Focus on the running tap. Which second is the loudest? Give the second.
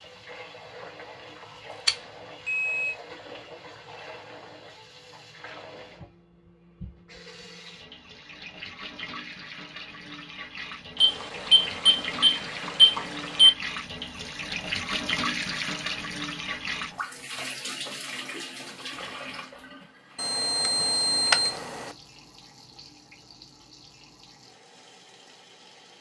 15 s.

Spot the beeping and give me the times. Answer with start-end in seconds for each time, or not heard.
1.9-3.0, 11.0-13.5, 20.1-21.9.